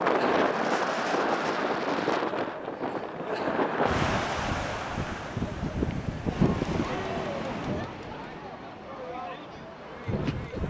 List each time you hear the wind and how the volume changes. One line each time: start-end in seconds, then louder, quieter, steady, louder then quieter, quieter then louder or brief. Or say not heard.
0.0-10.6 quieter.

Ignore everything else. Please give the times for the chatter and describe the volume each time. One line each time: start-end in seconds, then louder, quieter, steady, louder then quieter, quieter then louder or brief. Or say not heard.
0.0-10.6 quieter.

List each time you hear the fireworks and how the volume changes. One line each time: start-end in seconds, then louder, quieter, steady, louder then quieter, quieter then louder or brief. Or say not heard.
not heard.